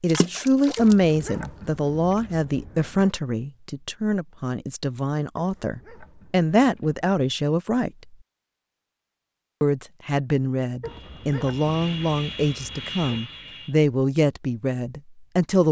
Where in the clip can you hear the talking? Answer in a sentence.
The talking can be heard from 0.0 to 7.9 s and from 9.6 to 15.6 s.